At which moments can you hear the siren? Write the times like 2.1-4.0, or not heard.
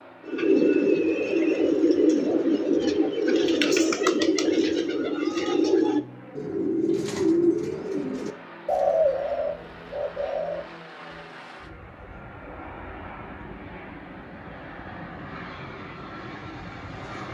not heard.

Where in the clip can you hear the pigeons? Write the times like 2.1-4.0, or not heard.
0.2-10.7.